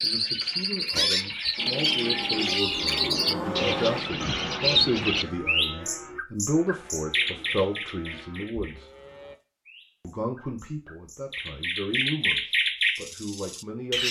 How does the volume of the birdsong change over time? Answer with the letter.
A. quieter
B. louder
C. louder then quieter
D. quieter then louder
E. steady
D.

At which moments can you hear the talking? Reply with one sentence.
You can hear the talking from 0.0 to 8.9 s and from 10.0 to 14.0 s.